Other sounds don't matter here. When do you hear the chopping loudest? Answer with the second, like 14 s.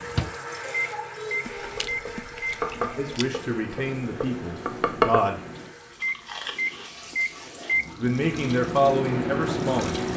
5 s.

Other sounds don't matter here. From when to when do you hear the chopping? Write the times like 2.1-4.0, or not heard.
1.8-5.2.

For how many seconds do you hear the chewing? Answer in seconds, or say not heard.
4 s.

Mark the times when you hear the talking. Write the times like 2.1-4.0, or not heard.
3.0-5.4, 8.0-10.0.